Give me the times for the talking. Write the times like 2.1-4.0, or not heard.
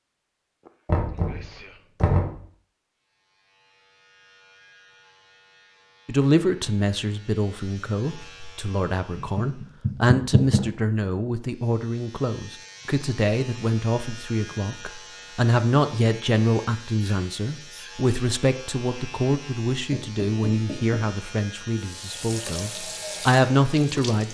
6.0-24.2.